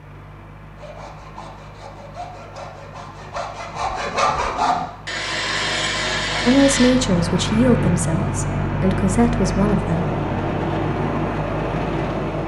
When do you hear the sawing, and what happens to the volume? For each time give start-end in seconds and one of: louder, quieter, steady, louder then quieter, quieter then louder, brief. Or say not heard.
0.8-7.0 louder.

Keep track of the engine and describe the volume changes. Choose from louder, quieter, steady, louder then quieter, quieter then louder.
louder.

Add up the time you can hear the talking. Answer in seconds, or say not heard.
4 s.